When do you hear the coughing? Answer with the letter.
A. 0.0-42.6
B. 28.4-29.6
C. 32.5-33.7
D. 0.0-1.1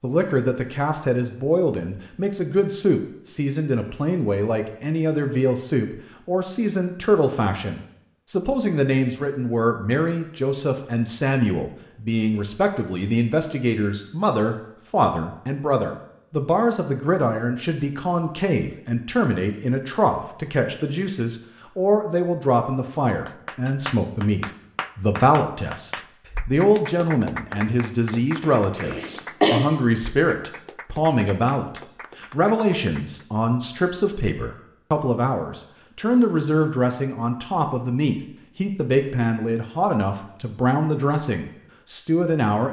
B.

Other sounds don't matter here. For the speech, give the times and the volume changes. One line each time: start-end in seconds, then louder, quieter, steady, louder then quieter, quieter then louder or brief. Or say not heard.
0.0-42.6 steady.